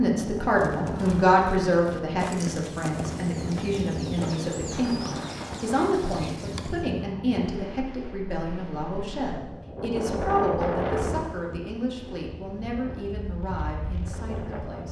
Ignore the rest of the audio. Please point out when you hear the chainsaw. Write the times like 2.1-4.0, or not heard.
not heard.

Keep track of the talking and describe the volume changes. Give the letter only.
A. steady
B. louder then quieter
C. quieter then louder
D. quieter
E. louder
D.